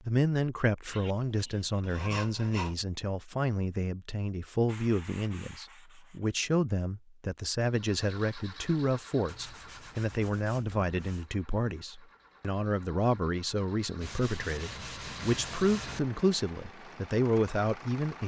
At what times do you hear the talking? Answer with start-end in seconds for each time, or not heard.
0.1-18.2.